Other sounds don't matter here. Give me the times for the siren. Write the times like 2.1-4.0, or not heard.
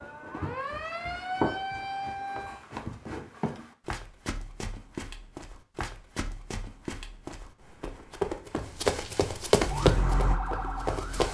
0.0-2.6, 9.6-11.2.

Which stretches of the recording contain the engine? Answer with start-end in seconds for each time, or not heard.
9.6-11.2.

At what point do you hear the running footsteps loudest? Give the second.
10 s.